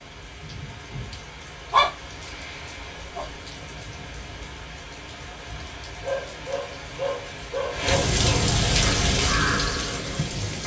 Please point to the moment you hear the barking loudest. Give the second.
2 s.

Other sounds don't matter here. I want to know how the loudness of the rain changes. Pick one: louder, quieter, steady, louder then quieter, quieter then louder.
louder.